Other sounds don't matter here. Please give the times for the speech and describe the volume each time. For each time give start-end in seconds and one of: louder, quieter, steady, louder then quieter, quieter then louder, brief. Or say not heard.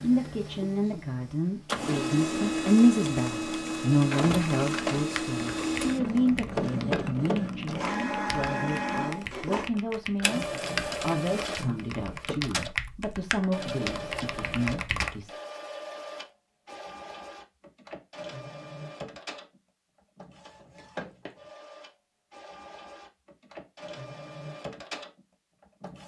0.0-15.3 quieter.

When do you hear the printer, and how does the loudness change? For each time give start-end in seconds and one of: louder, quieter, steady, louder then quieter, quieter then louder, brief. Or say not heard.
0.0-26.0 quieter.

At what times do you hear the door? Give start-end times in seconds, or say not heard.
not heard.